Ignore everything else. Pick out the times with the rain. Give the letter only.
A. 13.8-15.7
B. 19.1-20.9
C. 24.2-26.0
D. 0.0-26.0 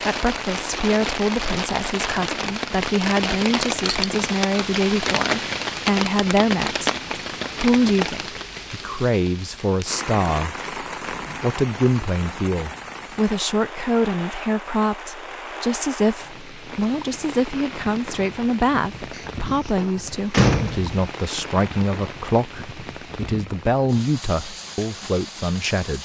D.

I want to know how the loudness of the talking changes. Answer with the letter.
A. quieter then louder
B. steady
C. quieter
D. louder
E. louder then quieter
B.